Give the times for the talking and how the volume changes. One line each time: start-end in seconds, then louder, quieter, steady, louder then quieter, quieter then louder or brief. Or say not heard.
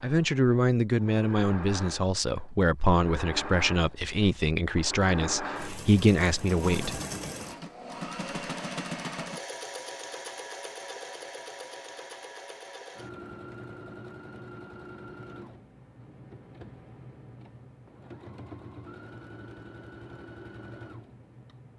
0.0-7.0 steady.